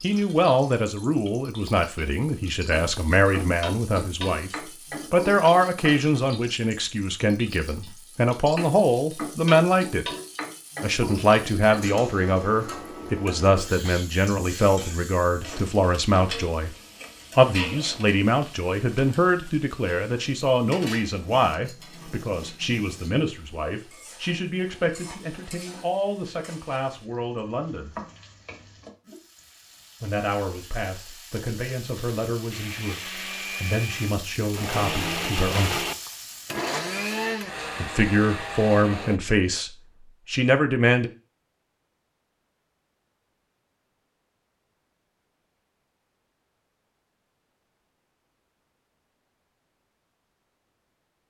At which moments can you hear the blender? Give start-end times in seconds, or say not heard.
32.5-39.2.